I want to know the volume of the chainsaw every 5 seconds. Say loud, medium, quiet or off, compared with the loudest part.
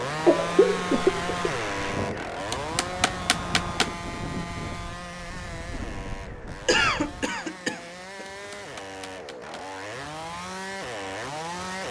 loud, medium, loud.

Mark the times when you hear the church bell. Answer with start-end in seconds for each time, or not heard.
not heard.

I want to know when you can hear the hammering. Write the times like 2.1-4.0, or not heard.
2.5-4.0, 8.3-9.5.